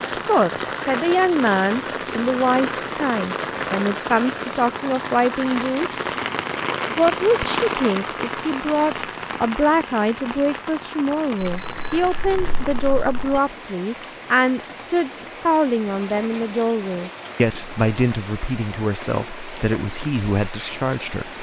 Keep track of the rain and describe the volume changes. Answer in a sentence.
The loudness of the rain goes down.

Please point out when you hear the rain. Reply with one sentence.
You can hear the rain from 0.0 to 21.3 s.